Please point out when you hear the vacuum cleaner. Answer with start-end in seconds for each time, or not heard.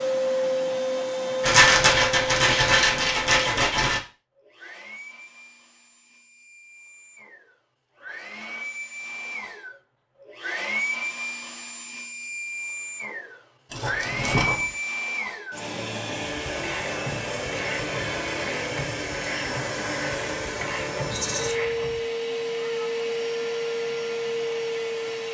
0.0-25.2.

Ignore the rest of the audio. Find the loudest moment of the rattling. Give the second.
2 s.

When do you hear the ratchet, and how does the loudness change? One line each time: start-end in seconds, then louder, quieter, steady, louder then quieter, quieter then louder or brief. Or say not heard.
16.4-22.1 steady.